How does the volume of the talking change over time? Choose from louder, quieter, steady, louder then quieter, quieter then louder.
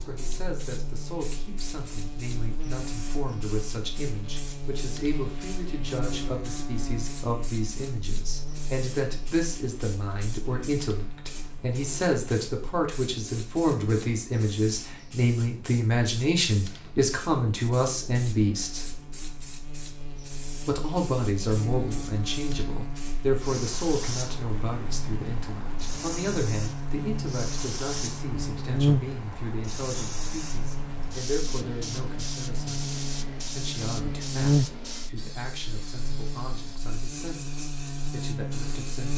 louder then quieter.